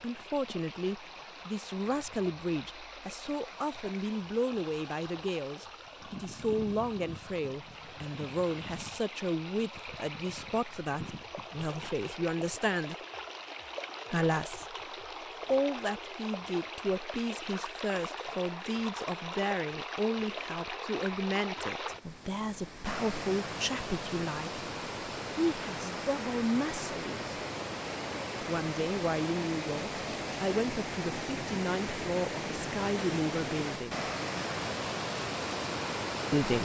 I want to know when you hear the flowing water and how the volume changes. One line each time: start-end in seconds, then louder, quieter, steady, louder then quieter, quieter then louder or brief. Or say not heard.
0.0-36.6 louder.